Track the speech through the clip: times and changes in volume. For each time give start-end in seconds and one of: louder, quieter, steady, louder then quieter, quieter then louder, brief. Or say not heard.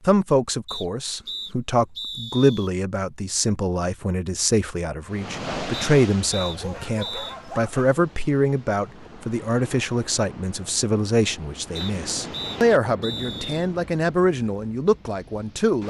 0.1-15.8 steady.